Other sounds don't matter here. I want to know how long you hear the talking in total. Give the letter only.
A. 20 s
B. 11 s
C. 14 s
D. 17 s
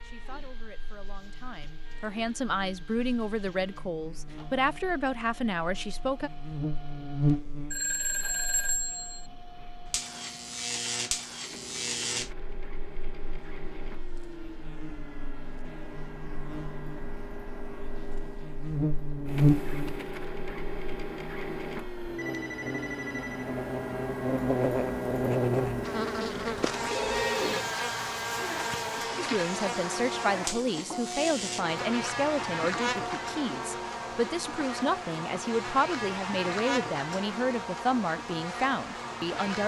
D.